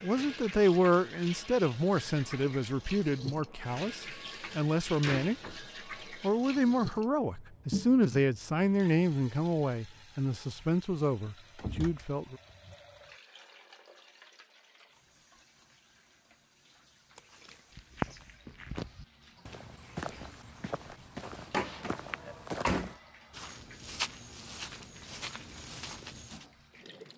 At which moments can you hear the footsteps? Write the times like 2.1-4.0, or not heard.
17.1-26.4.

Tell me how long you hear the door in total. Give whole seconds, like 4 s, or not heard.
5 s.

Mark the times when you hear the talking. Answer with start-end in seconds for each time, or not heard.
0.0-12.3.